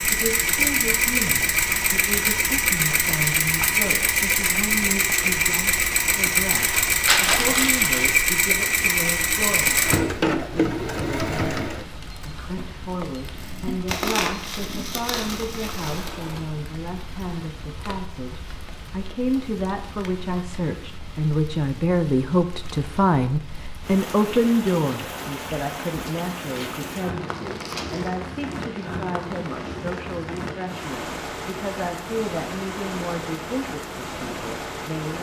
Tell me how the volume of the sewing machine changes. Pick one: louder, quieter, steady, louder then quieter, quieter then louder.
quieter.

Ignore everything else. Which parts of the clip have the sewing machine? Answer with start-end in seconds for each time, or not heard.
0.0-16.6.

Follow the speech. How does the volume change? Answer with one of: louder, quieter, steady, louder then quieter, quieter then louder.
louder then quieter.